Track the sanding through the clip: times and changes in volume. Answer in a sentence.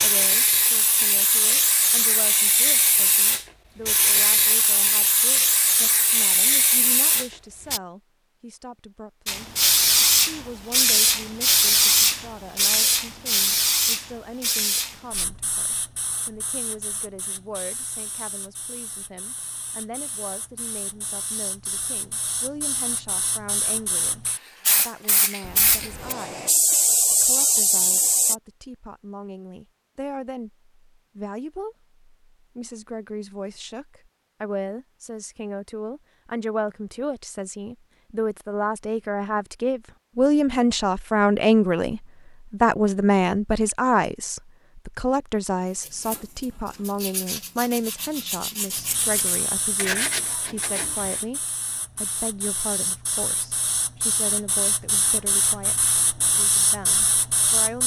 The sanding can be heard from 45.6 to 51.2 s, getting louder.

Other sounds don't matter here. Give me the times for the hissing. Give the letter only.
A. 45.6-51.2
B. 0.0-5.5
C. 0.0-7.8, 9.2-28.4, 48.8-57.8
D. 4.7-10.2
C.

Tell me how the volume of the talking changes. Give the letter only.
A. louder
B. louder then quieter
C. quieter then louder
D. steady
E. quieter
B.